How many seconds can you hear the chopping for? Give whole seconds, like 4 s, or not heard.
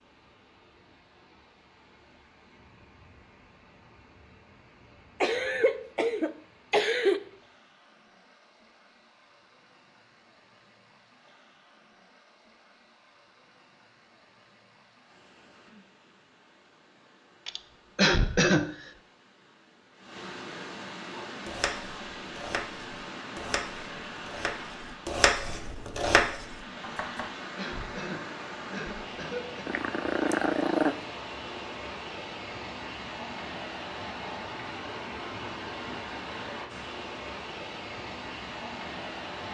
6 s.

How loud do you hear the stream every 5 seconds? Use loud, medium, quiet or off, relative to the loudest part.
quiet, quiet, quiet, quiet, loud, loud, loud, loud.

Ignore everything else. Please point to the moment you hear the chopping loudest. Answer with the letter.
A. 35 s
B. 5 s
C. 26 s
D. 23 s
C.